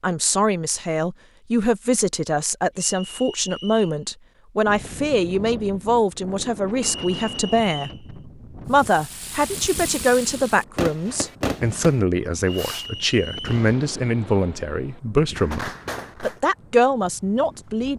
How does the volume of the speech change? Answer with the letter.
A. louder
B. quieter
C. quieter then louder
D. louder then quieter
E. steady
E.